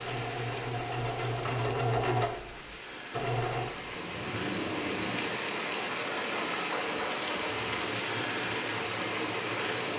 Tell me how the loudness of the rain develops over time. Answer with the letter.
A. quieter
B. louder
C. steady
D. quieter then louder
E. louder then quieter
B.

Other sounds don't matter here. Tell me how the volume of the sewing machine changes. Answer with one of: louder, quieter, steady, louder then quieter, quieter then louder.
quieter.